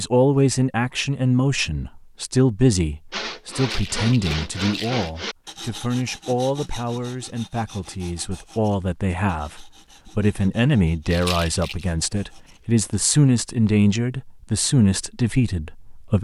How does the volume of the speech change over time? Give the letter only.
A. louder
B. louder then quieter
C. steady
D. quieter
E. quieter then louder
E.